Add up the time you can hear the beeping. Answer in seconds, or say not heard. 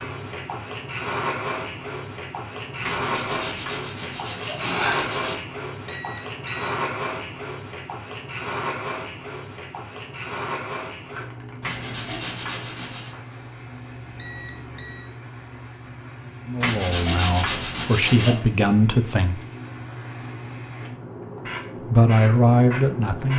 2 s.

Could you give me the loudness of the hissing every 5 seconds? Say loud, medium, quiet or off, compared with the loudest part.
loud, loud, medium, medium, loud.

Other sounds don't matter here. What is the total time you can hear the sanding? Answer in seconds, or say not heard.
6 s.